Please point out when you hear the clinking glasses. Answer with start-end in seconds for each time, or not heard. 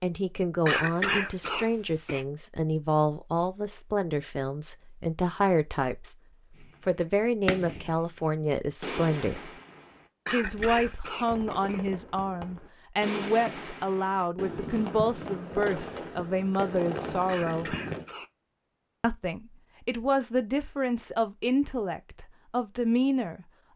not heard.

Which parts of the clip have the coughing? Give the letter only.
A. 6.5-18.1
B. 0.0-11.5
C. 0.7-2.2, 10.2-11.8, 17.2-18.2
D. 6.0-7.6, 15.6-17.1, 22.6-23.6
C.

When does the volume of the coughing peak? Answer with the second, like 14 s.
1 s.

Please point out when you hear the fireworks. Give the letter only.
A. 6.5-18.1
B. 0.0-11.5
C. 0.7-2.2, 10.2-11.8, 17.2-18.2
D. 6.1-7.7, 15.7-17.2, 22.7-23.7
A.